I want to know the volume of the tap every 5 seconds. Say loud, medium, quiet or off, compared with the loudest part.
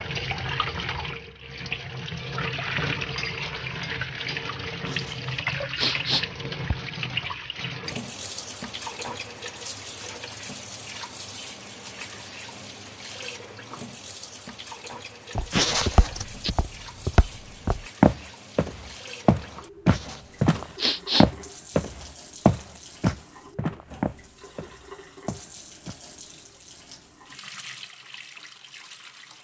loud, loud, medium, quiet, quiet, quiet.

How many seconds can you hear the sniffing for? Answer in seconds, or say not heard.
4 s.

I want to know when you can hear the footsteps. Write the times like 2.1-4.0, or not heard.
15.3-25.9.